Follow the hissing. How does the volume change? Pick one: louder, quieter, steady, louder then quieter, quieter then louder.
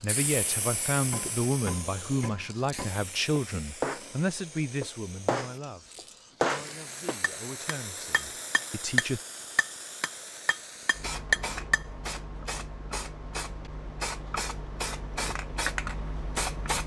quieter then louder.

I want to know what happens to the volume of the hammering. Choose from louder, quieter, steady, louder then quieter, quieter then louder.
louder.